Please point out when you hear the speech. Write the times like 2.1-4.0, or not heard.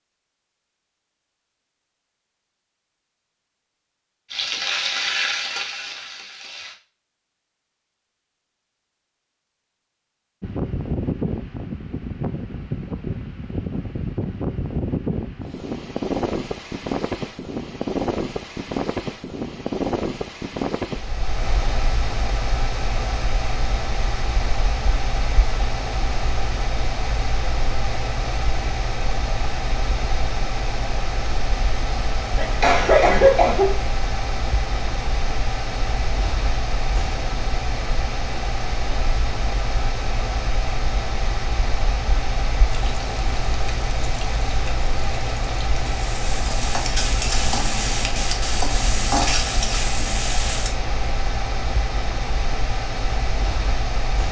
not heard.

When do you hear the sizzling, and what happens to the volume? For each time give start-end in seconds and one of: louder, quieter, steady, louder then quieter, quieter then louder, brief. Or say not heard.
4.3-6.8 brief
42.6-50.8 louder.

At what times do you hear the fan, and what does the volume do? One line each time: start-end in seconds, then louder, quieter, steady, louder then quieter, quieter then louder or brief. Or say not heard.
10.4-54.2 steady.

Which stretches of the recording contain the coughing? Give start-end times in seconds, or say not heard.
32.4-33.8.